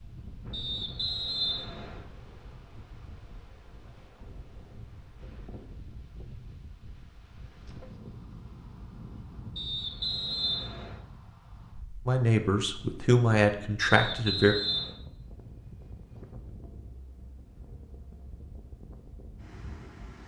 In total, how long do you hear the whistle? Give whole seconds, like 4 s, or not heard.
4 s.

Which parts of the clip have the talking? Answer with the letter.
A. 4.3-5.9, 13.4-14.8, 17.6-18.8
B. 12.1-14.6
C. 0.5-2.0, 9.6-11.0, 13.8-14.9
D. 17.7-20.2
B.